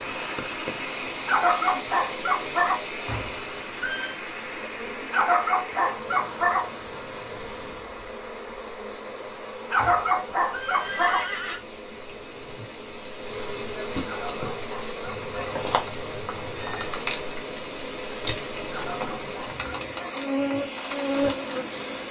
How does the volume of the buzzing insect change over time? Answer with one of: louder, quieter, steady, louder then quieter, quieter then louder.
louder.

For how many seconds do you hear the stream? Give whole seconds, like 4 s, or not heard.
22 s.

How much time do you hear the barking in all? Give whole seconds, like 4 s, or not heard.
8 s.